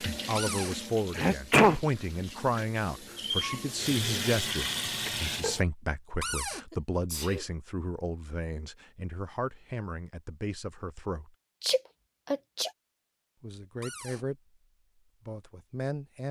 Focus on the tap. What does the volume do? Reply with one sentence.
The volume of the tap goes down, then up.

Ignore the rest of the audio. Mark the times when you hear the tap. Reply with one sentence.
The tap can be heard from 0.0 to 5.7 s.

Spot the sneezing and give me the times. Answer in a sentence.
The sneezing can be heard from 1.1 to 1.8 s, from 6.7 to 7.5 s and from 11.6 to 12.7 s.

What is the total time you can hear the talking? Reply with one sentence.
You can hear the talking for 13 seconds altogether.